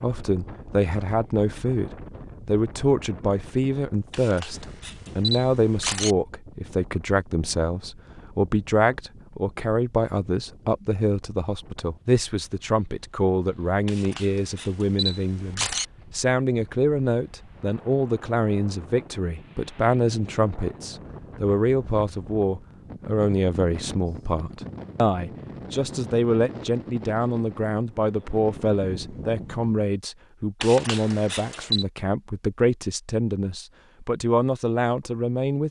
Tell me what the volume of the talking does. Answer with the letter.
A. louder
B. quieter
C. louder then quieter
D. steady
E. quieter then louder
D.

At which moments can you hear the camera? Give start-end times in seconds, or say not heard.
4.1-6.2, 13.8-15.8, 30.6-31.9.